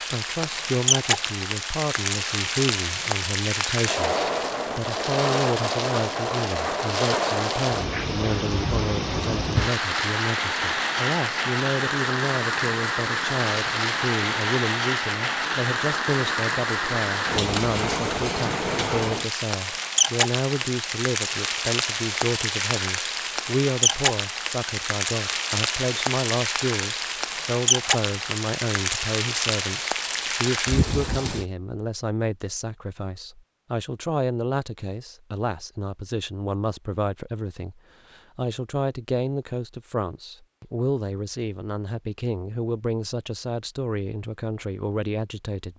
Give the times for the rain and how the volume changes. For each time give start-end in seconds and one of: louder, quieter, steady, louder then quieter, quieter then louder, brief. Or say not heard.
0.0-31.4 steady.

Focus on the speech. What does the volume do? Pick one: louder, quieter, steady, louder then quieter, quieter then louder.
steady.